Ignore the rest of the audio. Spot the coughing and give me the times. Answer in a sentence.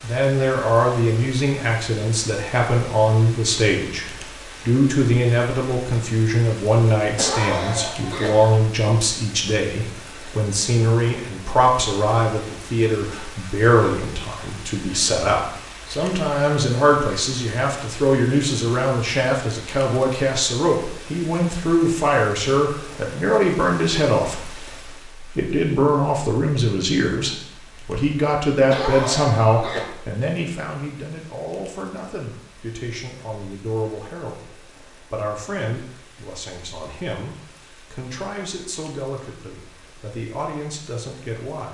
The coughing can be heard from 7.2 to 8.6 s and from 28.7 to 29.9 s.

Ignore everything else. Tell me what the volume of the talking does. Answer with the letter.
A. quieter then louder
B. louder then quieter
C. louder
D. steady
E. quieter
E.